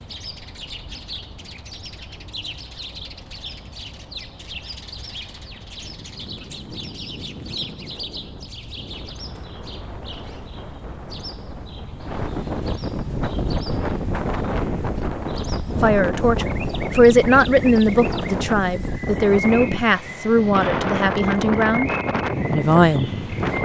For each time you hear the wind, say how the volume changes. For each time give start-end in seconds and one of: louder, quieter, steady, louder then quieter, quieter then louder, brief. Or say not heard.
5.8-23.5 louder.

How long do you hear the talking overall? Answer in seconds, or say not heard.
7 s.